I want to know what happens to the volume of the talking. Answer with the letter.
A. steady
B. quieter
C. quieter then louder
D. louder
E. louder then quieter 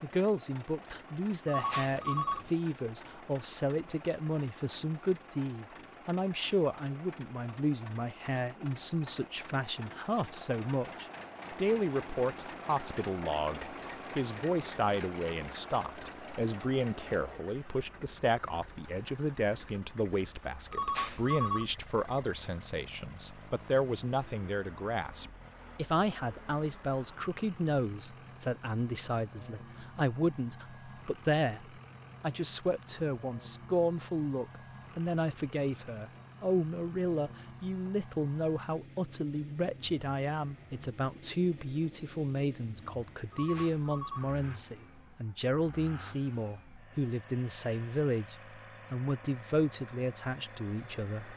A.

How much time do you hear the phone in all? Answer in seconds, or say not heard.
3 s.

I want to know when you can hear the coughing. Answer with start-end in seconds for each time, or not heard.
not heard.